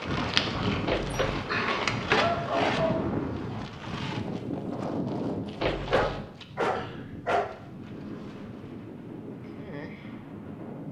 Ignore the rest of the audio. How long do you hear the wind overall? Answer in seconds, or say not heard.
11 s.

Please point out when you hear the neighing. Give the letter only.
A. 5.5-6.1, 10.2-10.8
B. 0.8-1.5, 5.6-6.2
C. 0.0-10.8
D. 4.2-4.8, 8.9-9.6
B.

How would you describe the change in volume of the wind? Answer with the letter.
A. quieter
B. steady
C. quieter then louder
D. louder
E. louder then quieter
A.